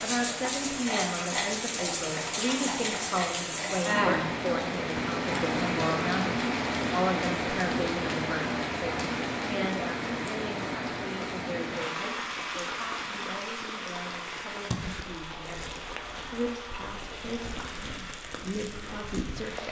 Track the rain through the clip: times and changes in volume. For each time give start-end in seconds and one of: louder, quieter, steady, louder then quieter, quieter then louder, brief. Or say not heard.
0.0-19.6 quieter.